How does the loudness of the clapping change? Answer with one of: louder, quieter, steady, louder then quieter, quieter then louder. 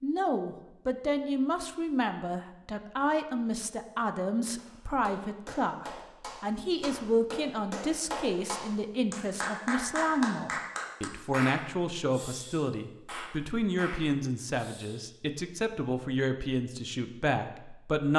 louder then quieter.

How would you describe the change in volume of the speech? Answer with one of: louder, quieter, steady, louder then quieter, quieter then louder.
steady.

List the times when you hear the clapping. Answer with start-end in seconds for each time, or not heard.
4.5-15.2.